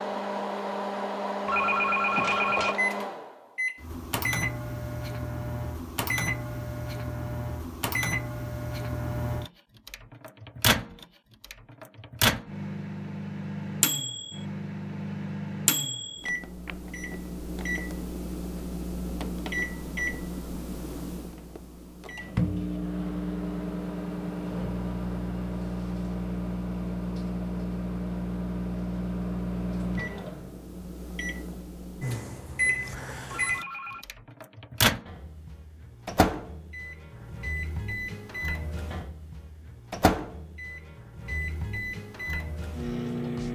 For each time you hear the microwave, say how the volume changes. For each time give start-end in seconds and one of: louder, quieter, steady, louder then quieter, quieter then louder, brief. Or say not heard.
0.0-43.5 steady.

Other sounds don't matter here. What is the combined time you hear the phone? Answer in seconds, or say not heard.
2 s.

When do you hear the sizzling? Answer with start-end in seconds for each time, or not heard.
not heard.